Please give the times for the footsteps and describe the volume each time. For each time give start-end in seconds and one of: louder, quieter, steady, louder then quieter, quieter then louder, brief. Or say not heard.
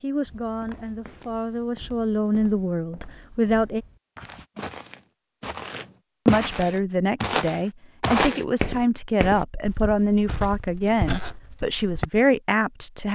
0.2-12.1 louder then quieter.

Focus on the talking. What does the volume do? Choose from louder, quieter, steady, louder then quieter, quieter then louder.
louder.